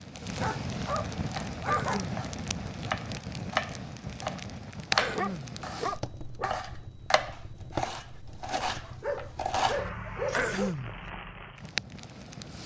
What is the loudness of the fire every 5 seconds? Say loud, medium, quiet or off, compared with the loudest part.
loud, medium, loud.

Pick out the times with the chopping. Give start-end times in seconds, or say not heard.
1.2-11.1.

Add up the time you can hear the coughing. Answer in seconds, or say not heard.
2 s.